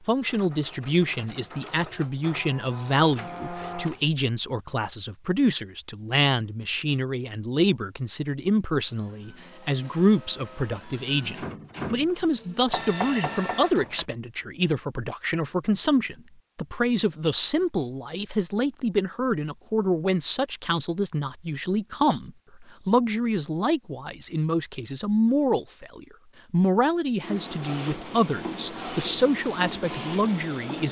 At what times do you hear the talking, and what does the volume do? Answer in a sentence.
You can hear the talking from 0.1 to 30.8 s, at a steady volume.